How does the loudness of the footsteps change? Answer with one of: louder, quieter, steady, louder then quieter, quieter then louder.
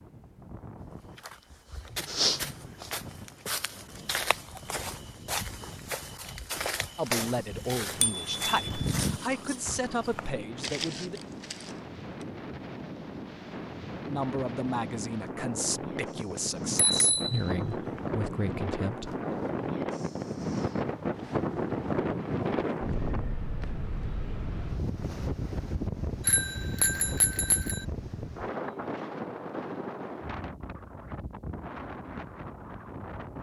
quieter.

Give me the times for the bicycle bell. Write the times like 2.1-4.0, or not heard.
7.5-9.2, 16.6-18.0, 26.2-27.9.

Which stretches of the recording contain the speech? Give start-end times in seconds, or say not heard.
7.0-11.2, 14.1-19.1.